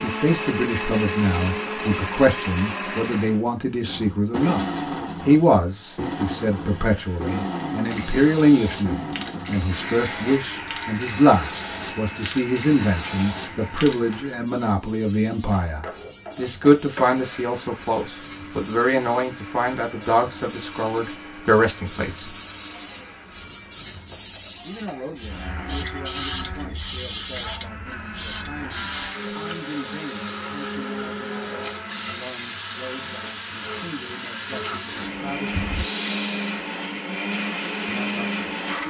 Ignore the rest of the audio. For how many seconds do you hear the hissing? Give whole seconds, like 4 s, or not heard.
31 s.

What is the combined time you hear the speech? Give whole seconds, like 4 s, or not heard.
34 s.